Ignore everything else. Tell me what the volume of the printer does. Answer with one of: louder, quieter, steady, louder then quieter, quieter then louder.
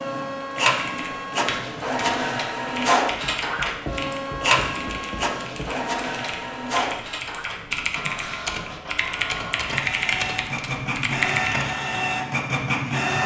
quieter then louder.